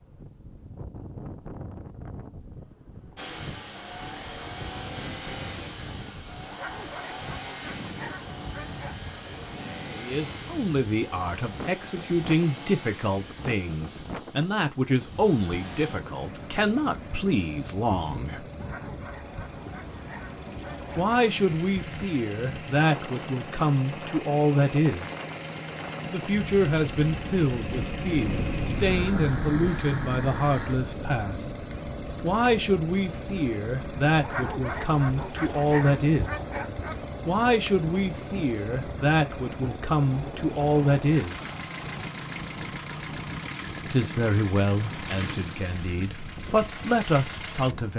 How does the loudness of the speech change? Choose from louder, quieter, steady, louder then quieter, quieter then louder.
steady.